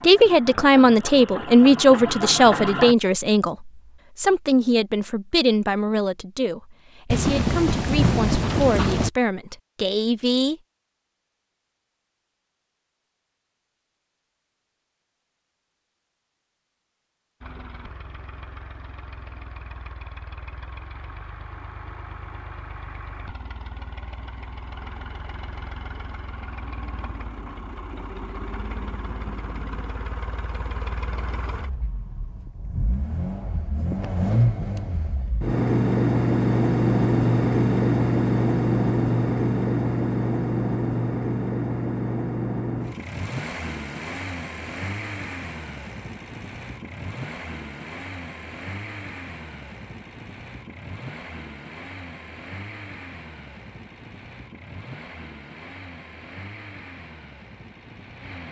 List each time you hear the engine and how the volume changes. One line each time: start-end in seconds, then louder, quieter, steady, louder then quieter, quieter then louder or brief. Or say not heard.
0.0-3.0 brief
17.4-58.4 louder then quieter.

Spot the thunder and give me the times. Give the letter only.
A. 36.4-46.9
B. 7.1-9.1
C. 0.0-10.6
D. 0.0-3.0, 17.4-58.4
B.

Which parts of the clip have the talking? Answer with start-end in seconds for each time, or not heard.
0.0-10.6.